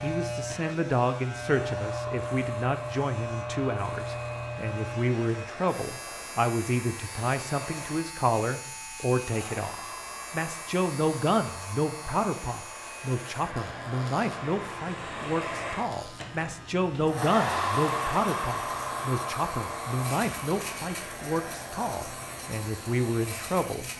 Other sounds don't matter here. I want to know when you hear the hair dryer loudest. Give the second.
18 s.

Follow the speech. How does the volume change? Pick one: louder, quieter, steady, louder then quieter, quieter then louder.
steady.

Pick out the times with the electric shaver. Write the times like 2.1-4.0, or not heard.
0.0-23.9.